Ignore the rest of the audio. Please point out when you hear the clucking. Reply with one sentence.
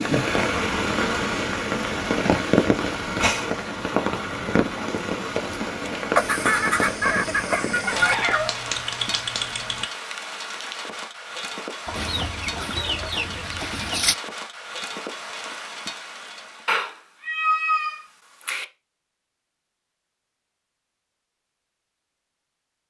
The clucking can be heard from 6.2 to 8.2 s and from 11.8 to 14.2 s.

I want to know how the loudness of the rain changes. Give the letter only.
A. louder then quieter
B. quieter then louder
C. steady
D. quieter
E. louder
D.